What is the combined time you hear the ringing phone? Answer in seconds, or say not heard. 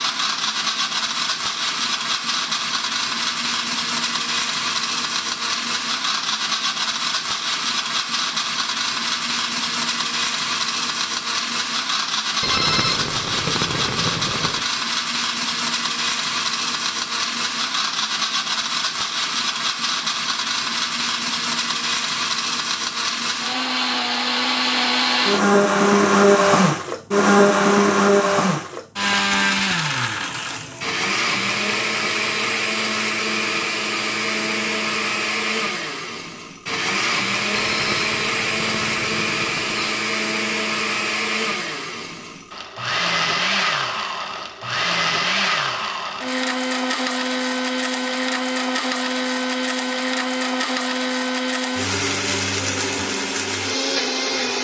5 s.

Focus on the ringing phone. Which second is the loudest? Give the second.
13 s.